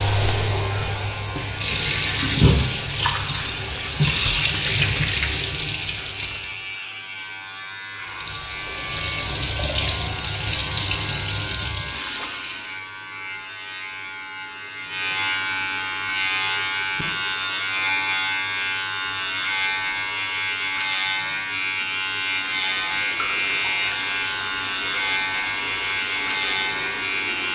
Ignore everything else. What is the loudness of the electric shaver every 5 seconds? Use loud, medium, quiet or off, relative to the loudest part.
medium, medium, medium, loud, loud, loud.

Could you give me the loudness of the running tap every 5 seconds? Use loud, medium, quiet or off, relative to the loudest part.
loud, loud, loud, off, quiet, quiet.